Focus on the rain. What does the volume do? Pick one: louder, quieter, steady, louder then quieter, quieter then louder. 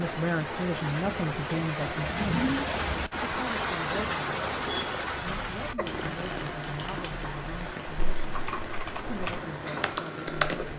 quieter.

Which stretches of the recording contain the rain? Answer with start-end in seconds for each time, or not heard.
0.0-10.7.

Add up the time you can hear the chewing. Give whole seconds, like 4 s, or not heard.
2 s.